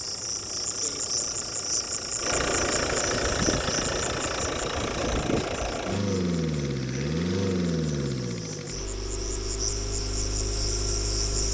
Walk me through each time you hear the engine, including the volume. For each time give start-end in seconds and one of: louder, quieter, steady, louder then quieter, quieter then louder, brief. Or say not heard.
0.0-11.4 louder then quieter.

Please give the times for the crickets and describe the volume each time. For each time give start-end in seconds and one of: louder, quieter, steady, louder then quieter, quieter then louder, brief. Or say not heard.
0.0-11.4 quieter then louder.